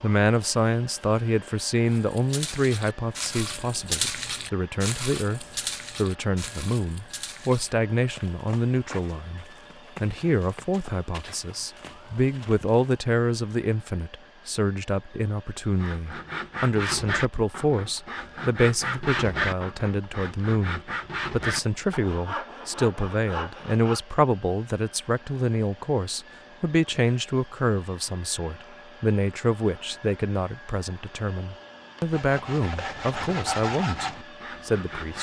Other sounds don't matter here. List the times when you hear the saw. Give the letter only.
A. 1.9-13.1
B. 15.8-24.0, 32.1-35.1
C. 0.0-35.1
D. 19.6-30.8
B.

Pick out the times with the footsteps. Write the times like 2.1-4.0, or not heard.
1.9-13.1.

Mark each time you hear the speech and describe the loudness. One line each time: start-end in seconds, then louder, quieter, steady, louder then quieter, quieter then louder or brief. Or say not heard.
0.0-35.1 steady.